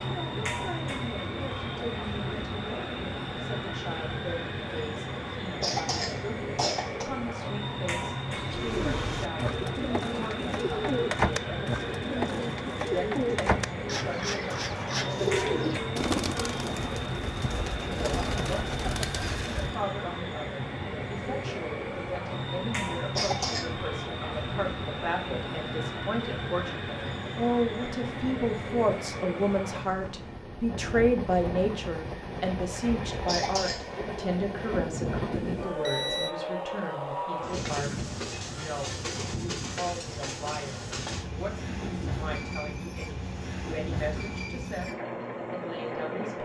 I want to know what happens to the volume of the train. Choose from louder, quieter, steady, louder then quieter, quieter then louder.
steady.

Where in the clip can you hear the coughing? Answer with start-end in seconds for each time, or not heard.
5.6-7.0, 23.1-23.6, 33.2-33.9.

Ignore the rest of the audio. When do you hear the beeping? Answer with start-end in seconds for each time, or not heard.
35.5-36.4.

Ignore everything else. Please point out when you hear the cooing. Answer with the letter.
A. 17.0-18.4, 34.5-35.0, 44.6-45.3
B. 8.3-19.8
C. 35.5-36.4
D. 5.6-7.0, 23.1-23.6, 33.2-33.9
B.